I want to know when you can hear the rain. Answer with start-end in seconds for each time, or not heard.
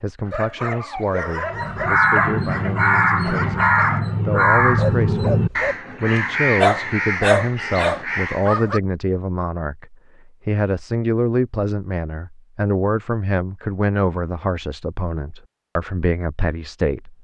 not heard.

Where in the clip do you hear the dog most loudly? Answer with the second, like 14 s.
7 s.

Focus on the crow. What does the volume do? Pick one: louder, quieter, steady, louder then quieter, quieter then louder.
quieter.